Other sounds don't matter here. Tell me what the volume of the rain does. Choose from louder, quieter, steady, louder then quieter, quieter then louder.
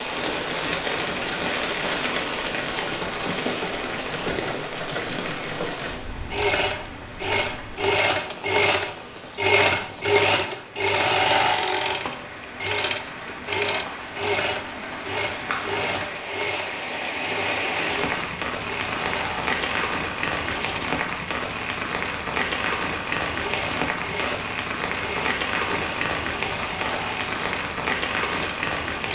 quieter then louder.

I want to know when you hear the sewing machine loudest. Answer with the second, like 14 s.
10 s.